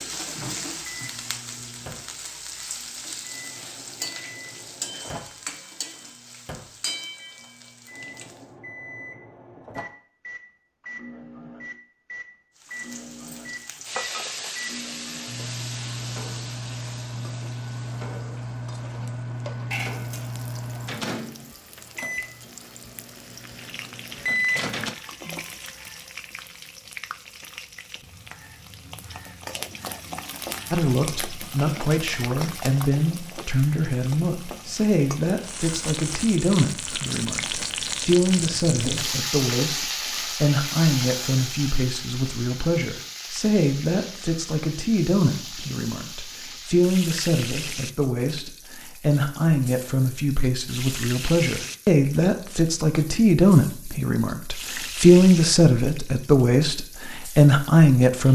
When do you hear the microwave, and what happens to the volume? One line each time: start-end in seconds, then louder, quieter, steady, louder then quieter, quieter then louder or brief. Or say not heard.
0.0-24.9 louder.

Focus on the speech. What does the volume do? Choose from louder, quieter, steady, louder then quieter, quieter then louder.
louder.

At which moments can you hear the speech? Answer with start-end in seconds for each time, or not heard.
30.7-58.3.